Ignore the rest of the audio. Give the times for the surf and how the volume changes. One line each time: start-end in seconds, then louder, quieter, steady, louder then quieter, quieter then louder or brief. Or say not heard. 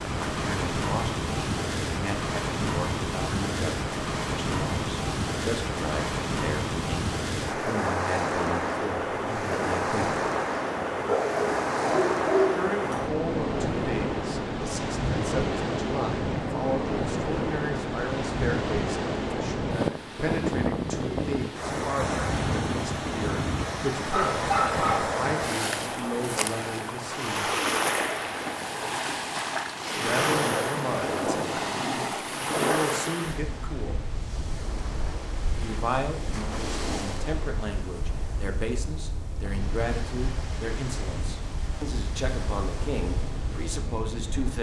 0.0-44.5 quieter.